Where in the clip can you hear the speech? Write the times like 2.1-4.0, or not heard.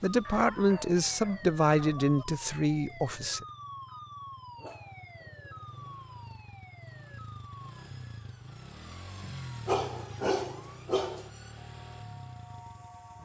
0.0-3.5.